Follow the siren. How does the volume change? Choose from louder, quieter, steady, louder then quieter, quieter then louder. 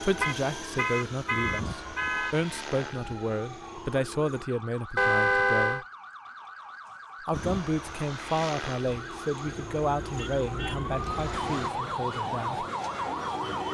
louder.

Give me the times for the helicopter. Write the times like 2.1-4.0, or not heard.
0.0-4.5, 7.3-11.7.